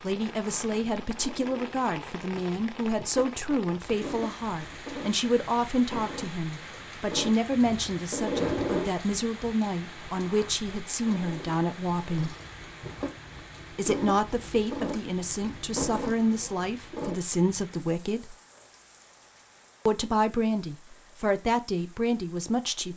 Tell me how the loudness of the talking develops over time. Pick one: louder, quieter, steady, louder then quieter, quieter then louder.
steady.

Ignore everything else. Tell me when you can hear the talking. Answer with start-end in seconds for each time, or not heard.
0.0-12.3, 13.8-18.4, 19.9-22.9.